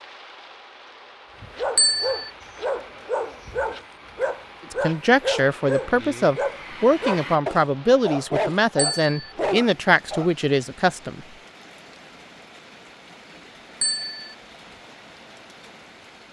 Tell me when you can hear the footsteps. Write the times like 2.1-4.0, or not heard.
not heard.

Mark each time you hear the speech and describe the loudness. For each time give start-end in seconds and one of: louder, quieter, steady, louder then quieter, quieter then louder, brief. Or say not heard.
4.7-11.2 steady.